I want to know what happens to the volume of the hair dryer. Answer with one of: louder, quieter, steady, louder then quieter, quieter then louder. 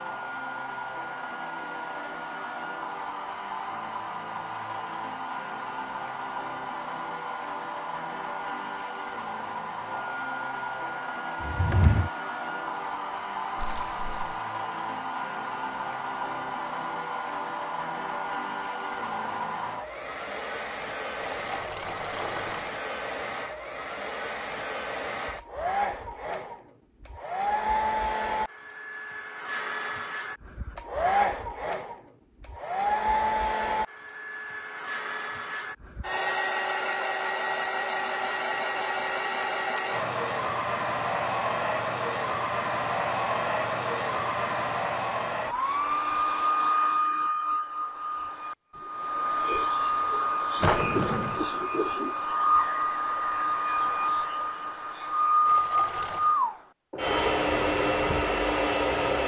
louder.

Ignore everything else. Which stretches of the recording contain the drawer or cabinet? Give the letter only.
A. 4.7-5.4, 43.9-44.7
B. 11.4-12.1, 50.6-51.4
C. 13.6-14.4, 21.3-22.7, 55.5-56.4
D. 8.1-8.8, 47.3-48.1
B.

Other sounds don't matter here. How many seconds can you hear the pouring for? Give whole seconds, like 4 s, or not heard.
3 s.